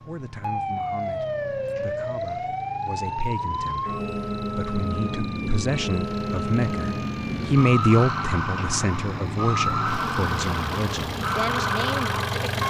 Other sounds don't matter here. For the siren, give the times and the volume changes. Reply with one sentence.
You can hear the siren from 0.2 to 12.6 s, at a steady volume.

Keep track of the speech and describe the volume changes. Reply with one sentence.
The loudness of the speech goes up, then down.